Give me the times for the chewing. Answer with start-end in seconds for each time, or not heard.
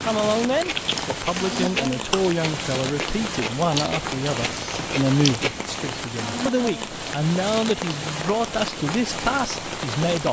0.5-5.6.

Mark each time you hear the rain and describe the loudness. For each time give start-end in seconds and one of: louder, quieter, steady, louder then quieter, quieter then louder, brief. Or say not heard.
0.0-10.2 steady.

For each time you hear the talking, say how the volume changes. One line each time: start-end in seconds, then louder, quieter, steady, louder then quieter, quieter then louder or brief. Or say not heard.
0.0-10.2 steady.